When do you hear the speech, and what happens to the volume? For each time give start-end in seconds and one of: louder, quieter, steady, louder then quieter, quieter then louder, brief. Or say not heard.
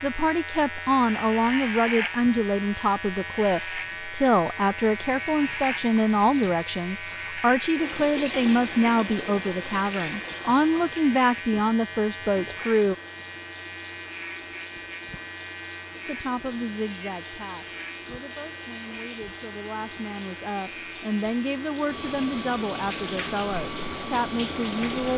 0.0-12.9 steady
16.1-25.1 quieter then louder.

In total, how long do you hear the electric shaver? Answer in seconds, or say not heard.
25 s.